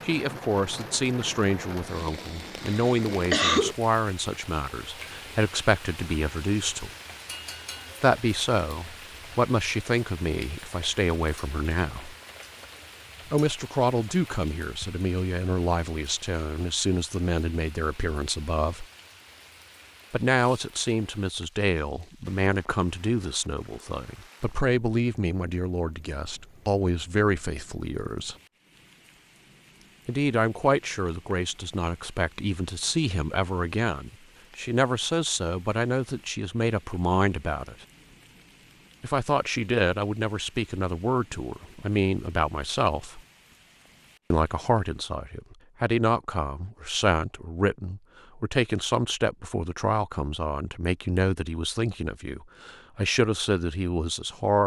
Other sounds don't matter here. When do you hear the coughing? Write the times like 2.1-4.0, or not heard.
2.6-3.8.